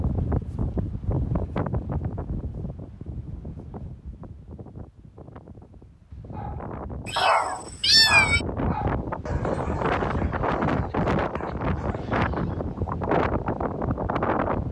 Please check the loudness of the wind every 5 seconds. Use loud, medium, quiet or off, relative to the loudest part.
medium, medium, loud.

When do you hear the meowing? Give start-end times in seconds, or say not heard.
7.0-8.4.